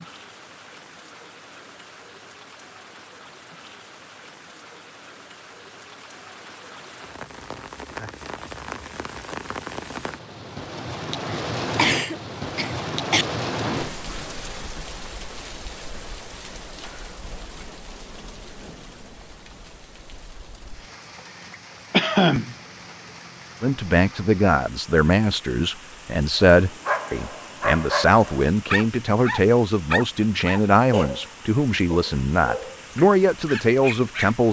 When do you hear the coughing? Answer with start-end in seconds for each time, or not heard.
11.8-13.2, 21.9-22.6.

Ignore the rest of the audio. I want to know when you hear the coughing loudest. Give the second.
22 s.